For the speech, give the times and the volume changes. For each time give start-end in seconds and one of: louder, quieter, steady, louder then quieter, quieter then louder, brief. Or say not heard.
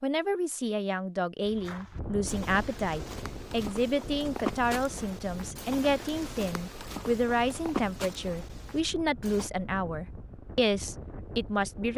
0.0-11.9 steady.